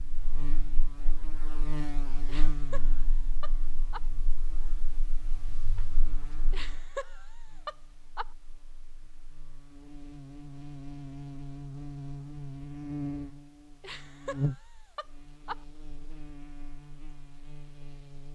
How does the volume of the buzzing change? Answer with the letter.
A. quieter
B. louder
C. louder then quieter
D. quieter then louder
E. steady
D.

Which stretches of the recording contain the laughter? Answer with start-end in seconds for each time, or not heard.
2.2-4.0, 6.5-8.3, 13.8-15.6.